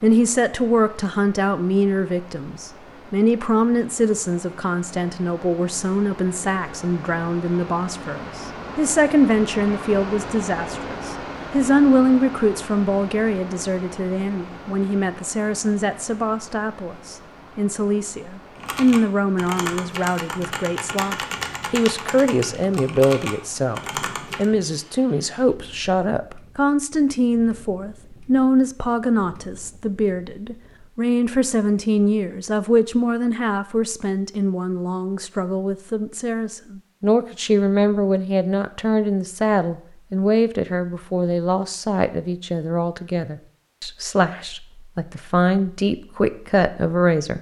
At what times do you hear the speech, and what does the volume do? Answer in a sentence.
The speech can be heard from 0.0 to 47.3 s, at a steady volume.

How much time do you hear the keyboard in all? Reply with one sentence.
The keyboard can be heard for 6 seconds in total.